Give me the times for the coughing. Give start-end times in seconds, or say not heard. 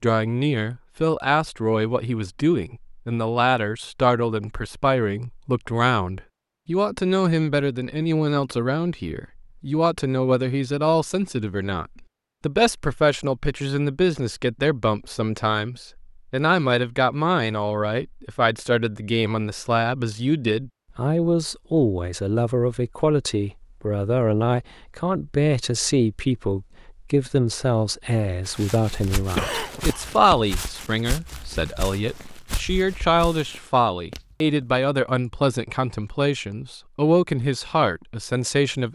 29.4-30.6.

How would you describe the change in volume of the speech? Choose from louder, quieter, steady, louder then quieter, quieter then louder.
steady.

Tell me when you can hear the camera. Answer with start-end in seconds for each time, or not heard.
not heard.